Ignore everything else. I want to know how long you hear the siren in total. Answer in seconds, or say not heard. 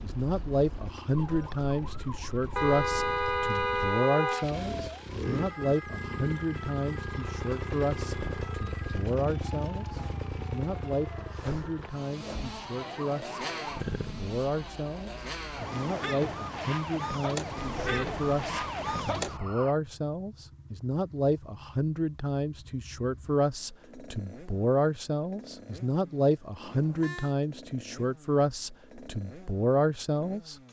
20 s.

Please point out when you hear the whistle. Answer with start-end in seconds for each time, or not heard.
not heard.